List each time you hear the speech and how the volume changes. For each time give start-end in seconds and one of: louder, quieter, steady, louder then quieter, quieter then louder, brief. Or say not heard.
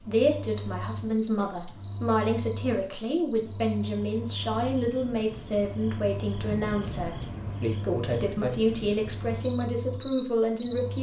0.0-10.9 steady.